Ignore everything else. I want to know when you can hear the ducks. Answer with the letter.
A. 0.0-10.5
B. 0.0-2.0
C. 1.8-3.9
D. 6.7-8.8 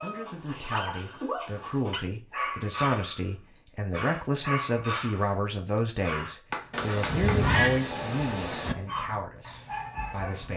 D.